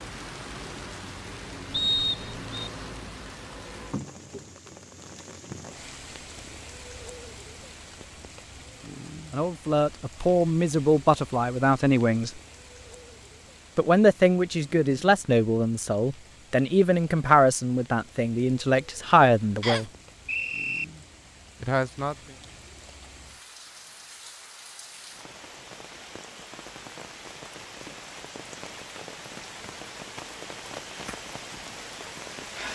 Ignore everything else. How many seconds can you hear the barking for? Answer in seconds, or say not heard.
not heard.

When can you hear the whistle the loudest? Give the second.
2 s.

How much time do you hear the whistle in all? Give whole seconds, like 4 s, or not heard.
2 s.